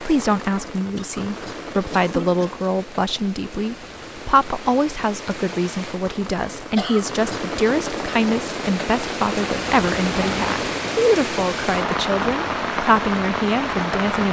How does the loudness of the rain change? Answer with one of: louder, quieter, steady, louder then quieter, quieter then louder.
louder.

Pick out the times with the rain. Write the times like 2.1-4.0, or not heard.
0.0-14.2.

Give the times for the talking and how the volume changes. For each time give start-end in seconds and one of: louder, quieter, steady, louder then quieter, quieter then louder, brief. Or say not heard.
0.0-14.2 steady.